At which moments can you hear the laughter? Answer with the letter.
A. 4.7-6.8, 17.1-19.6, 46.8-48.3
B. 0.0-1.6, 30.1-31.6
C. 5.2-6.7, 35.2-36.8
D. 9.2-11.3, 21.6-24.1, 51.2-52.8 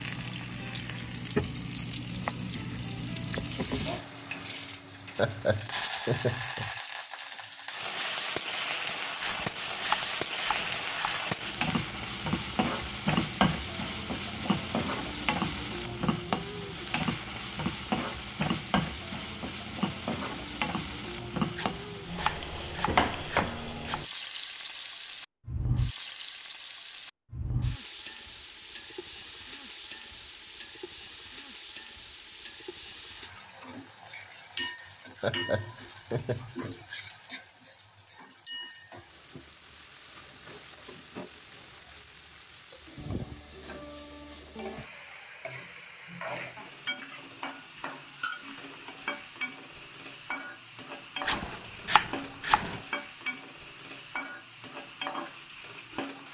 C.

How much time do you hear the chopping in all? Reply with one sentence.
The chopping can be heard for 6 seconds in total.